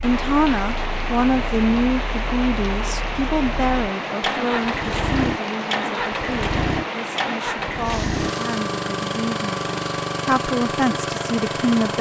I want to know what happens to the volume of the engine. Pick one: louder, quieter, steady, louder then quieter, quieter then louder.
louder.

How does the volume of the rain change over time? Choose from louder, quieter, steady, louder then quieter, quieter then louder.
steady.